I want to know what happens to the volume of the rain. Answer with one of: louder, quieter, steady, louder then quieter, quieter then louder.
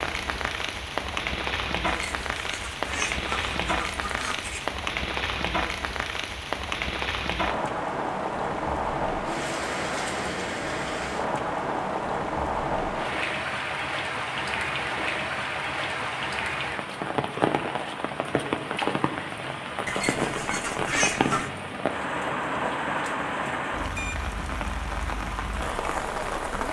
steady.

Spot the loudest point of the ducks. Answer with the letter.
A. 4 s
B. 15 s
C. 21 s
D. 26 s
C.